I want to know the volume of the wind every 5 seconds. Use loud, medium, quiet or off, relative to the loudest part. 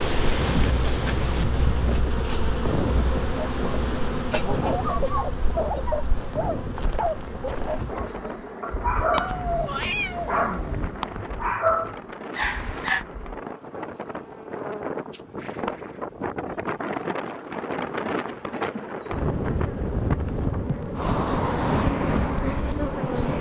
loud, medium, medium, loud, loud.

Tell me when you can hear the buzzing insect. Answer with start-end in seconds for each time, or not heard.
0.0-23.3.